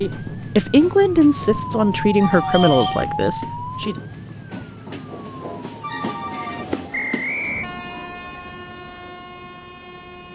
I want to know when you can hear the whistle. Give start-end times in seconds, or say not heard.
2.5-3.0, 6.9-7.7.